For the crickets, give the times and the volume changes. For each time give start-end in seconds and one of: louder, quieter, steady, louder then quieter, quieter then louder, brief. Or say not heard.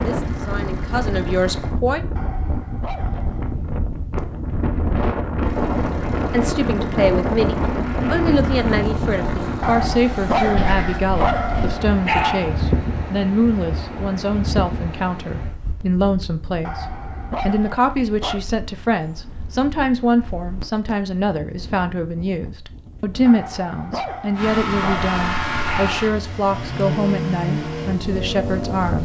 not heard.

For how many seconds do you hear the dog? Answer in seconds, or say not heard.
9 s.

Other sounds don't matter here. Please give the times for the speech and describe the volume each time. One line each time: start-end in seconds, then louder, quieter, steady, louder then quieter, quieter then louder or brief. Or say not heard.
0.0-2.0 brief
6.3-29.0 steady.